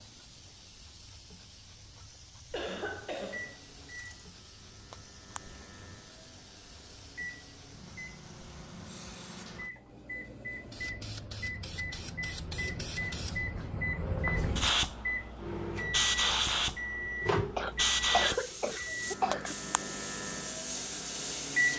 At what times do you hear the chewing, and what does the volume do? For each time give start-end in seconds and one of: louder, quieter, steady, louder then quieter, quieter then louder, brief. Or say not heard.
not heard.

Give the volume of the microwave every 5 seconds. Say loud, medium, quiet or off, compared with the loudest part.
quiet, quiet, medium, loud, loud.